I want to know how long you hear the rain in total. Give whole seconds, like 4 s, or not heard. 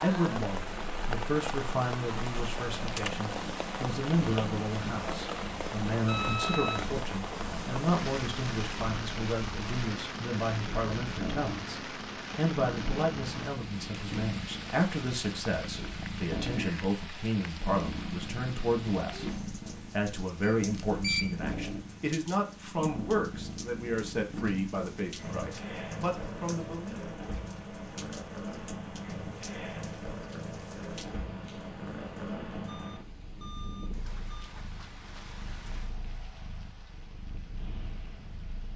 39 s.